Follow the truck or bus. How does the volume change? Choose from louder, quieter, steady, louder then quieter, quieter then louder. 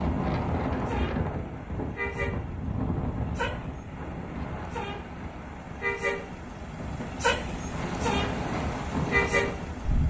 louder.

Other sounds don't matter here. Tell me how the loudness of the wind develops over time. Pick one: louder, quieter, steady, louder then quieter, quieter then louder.
quieter then louder.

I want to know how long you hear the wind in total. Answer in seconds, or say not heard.
10 s.